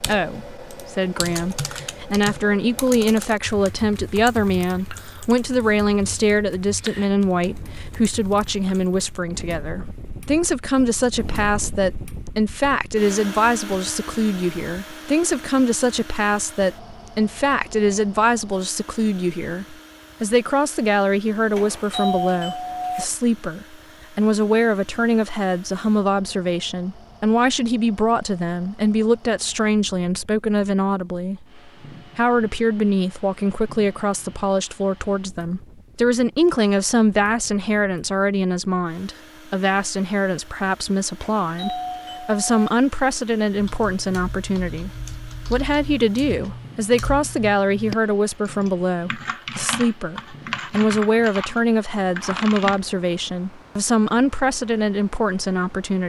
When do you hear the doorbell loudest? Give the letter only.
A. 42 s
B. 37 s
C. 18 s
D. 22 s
D.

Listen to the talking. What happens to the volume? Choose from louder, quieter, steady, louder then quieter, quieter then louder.
steady.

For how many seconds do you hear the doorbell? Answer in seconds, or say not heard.
3 s.